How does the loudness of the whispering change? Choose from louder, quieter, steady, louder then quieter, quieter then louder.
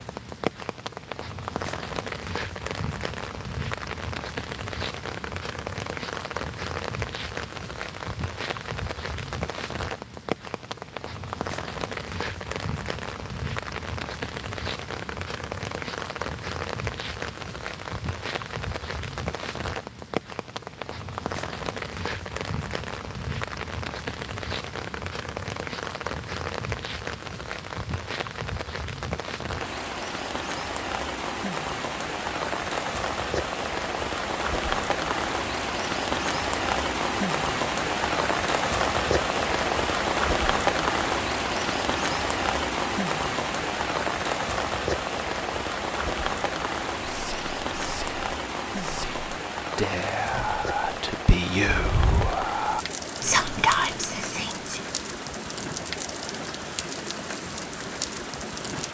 louder.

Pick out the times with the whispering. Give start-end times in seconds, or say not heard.
47.0-54.9.